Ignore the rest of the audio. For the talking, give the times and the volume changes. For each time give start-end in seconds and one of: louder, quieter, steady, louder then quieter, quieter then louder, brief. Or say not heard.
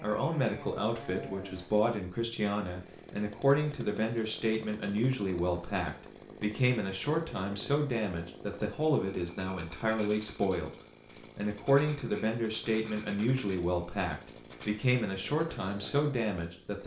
0.0-10.7 steady
11.3-16.8 steady.